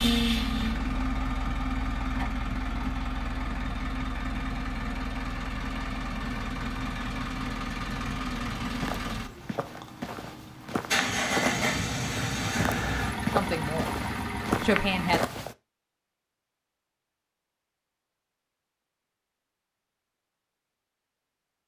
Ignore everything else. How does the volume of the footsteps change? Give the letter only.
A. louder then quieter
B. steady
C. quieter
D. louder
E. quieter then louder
D.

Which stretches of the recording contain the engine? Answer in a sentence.
You can hear the engine from 0.0 to 15.2 s.